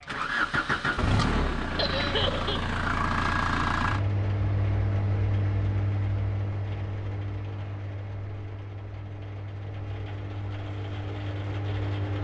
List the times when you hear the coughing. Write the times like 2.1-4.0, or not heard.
1.8-2.6.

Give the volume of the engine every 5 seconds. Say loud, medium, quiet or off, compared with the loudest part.
loud, medium, medium.